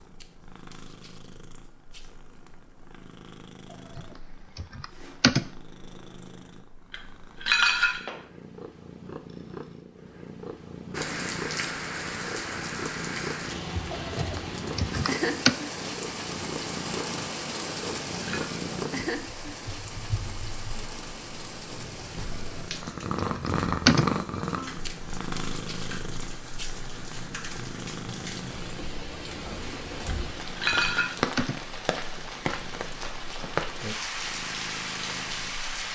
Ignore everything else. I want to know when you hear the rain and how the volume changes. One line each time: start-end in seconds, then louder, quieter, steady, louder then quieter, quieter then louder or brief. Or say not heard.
10.9-35.8 quieter then louder.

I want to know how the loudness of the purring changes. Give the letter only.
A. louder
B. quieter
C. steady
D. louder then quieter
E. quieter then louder
D.